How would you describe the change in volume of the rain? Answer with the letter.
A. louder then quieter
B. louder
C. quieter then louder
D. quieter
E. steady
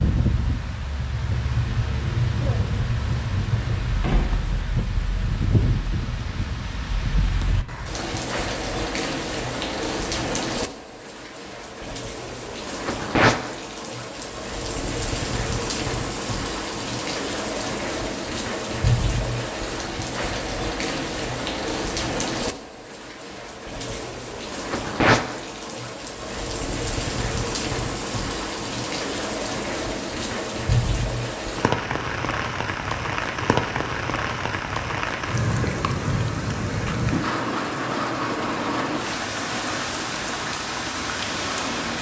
E.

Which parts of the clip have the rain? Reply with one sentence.
The rain can be heard from 0.0 to 41.9 s.